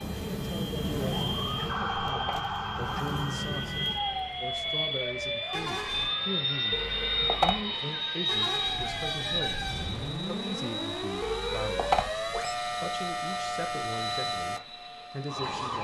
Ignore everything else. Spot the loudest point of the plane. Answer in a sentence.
The loudest moment of the plane is at 7 seconds.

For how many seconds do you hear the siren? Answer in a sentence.
The siren can be heard for 16 seconds in total.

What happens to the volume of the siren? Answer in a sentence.
The loudness of the siren goes down, then up.